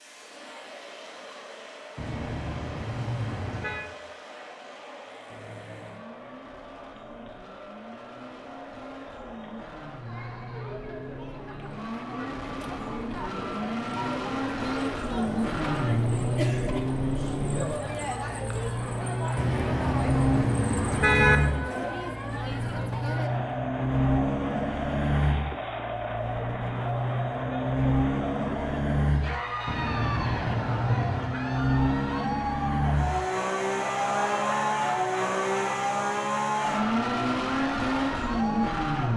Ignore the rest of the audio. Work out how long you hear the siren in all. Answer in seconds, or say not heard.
not heard.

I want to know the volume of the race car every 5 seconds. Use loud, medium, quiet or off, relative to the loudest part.
quiet, quiet, medium, loud, loud, loud, loud, loud.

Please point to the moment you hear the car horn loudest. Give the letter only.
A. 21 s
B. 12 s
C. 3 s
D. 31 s
A.